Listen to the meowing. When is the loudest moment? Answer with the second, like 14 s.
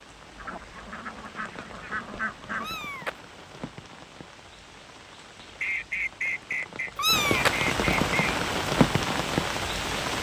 7 s.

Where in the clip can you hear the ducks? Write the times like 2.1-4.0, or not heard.
0.3-2.8, 5.5-8.4.